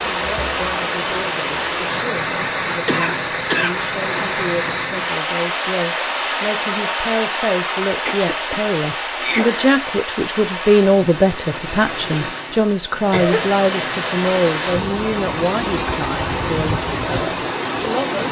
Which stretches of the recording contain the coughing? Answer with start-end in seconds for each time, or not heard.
2.9-4.3, 8.1-9.8, 13.1-13.5.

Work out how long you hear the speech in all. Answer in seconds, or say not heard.
18 s.